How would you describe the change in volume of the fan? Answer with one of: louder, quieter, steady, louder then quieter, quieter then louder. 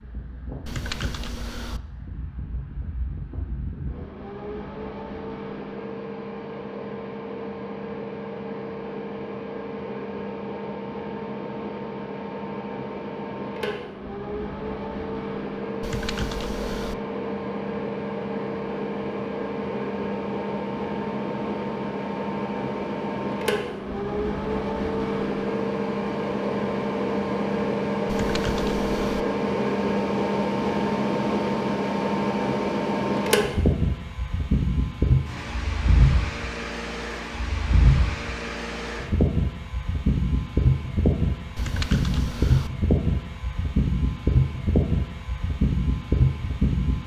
louder.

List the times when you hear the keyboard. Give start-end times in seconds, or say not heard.
0.7-1.8, 15.8-16.9, 28.1-29.2, 41.5-42.7.